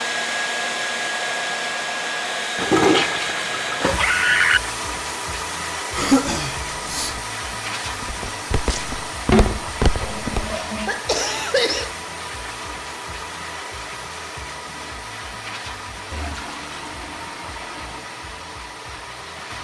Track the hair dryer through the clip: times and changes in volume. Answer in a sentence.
You can hear the hair dryer from 0.0 to 19.5 s, getting quieter.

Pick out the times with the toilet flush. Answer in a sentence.
You can hear the toilet flush from 2.5 to 4.6 s, from 9.3 to 11.0 s and from 16.1 to 18.0 s.